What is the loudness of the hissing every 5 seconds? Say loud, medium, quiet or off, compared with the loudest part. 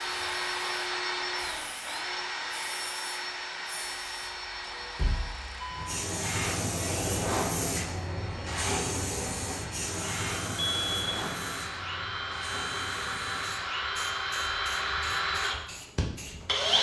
quiet, loud, medium, quiet.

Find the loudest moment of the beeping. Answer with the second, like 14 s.
11 s.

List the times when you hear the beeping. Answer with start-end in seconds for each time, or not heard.
4.6-6.0, 10.6-11.6.